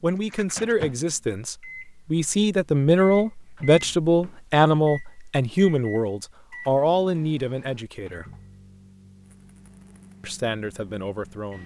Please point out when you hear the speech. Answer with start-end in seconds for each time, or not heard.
0.0-8.2, 10.2-11.6.